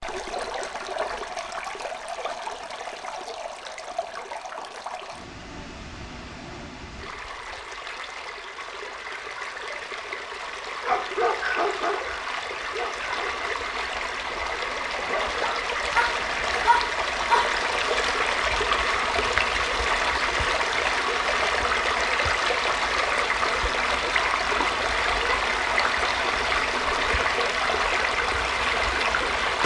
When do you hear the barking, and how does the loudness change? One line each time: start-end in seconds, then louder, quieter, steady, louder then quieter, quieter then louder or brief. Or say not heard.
10.8-17.6 quieter then louder.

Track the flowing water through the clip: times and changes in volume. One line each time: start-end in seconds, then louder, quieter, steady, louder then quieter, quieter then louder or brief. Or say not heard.
0.0-29.6 louder.